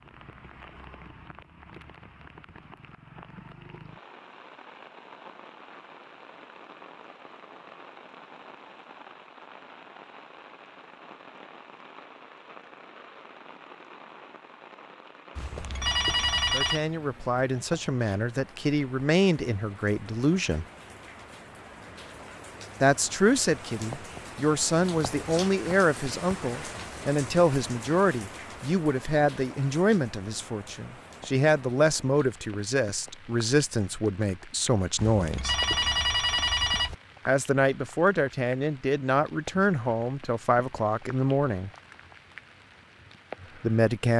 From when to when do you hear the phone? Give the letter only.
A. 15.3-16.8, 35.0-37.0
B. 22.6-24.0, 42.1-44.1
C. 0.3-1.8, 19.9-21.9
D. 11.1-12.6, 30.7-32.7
A.